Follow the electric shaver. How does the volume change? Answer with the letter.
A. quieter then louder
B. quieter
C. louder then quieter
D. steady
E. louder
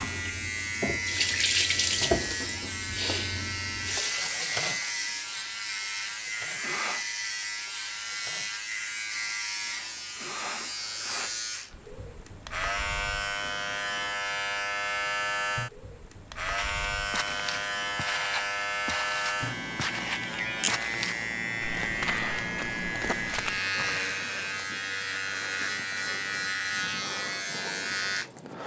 D.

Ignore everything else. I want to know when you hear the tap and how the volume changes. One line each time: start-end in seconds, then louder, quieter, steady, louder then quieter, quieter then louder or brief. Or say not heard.
0.0-8.7 quieter.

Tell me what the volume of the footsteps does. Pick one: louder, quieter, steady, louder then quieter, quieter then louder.
steady.